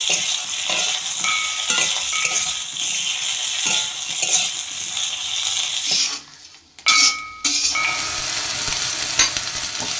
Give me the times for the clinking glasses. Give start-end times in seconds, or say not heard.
1.2-2.6, 6.8-8.2.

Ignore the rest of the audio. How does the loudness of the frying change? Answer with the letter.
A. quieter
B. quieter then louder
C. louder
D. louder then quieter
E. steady
E.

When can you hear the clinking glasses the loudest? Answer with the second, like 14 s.
7 s.